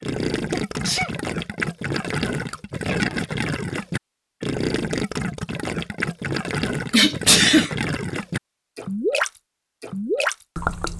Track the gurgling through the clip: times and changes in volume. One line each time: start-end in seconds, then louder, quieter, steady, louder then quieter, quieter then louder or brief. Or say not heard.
0.0-10.9 steady.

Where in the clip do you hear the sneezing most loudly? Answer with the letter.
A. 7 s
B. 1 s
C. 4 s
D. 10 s
A.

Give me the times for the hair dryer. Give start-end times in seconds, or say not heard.
not heard.